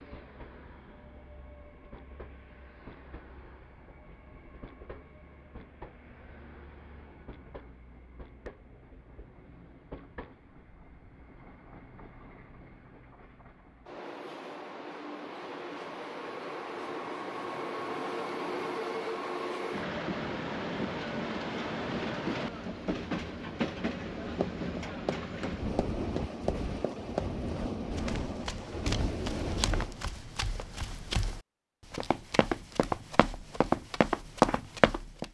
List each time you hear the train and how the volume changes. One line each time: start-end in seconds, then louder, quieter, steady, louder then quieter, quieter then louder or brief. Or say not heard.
0.0-30.0 louder.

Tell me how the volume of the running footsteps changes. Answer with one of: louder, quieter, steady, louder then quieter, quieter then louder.
louder.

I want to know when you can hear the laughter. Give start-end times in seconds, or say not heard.
not heard.